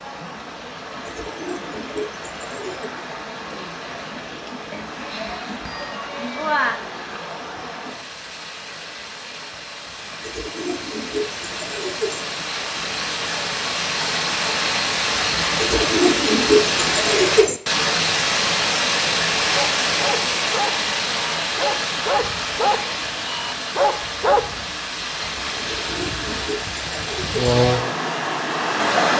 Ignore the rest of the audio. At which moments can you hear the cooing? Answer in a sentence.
The cooing can be heard from 1.1 to 2.9 s, from 10.2 to 12.2 s, from 15.6 to 17.6 s and from 25.6 to 27.4 s.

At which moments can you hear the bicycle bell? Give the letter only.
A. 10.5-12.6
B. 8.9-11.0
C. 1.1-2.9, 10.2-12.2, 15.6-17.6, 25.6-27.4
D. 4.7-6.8
D.